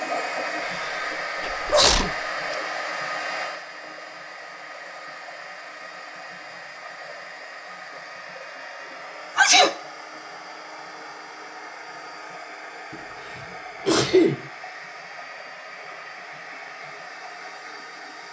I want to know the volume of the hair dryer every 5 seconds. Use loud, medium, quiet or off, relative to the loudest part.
loud, medium, medium, medium.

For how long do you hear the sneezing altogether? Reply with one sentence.
You can hear the sneezing for 4 seconds altogether.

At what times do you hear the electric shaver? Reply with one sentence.
The electric shaver can't be heard in this clip.